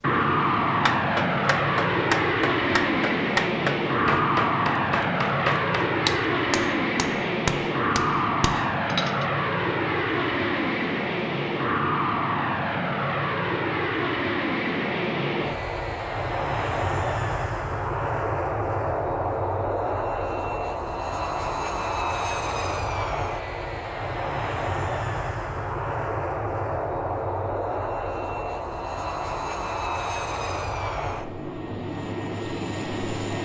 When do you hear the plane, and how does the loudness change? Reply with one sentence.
The plane can be heard from 0.0 to 33.4 s, getting quieter.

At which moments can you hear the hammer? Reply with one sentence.
You can hear the hammer from 0.8 to 9.2 s.